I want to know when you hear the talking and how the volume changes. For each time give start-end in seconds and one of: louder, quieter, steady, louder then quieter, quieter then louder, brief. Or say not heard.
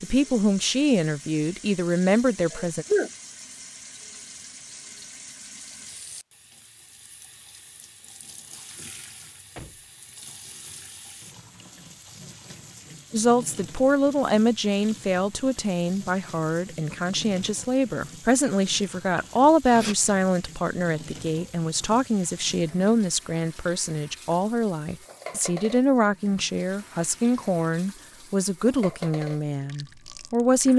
0.0-2.9 brief
13.1-30.7 steady.